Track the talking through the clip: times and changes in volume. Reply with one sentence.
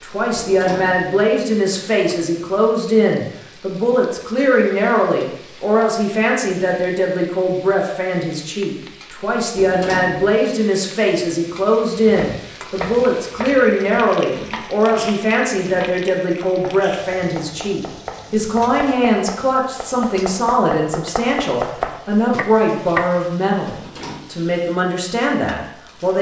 The talking can be heard from 0.0 to 26.1 s, at a steady volume.